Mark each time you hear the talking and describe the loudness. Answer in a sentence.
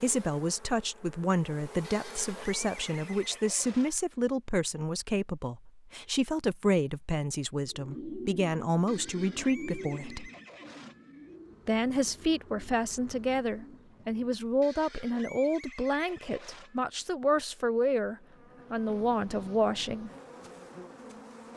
You can hear the talking from 0.0 to 10.3 s, at a steady volume; and from 11.7 to 20.1 s, at a steady volume.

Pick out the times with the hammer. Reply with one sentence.
The hammer can't be heard in this clip.